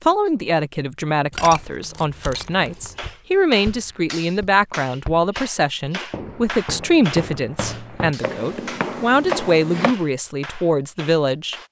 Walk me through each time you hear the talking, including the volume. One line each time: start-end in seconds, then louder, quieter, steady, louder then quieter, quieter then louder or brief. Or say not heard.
0.1-11.6 steady.